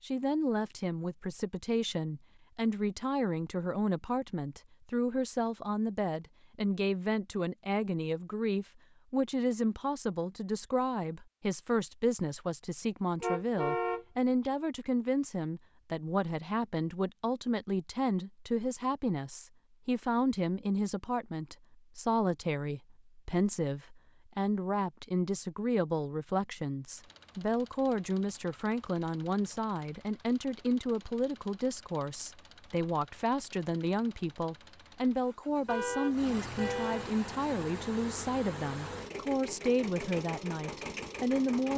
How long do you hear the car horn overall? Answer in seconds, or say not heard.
3 s.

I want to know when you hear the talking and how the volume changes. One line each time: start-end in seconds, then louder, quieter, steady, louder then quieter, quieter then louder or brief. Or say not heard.
0.0-41.7 steady.